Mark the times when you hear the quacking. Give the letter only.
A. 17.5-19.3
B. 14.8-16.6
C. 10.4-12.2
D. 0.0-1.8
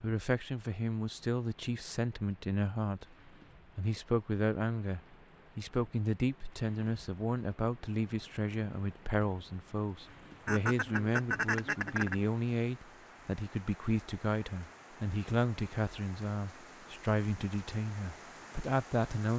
C.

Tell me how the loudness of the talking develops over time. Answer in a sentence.
The loudness of the talking stays about the same.